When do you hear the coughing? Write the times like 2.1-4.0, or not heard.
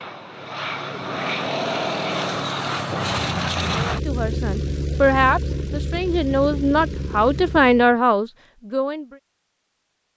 not heard.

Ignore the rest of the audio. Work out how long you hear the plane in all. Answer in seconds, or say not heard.
8 s.